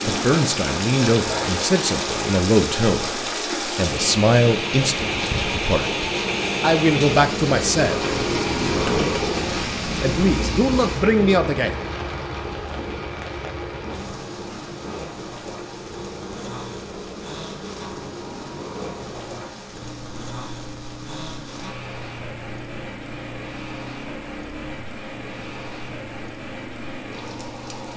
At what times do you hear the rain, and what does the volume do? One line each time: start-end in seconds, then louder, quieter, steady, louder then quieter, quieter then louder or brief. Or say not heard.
0.0-27.9 quieter.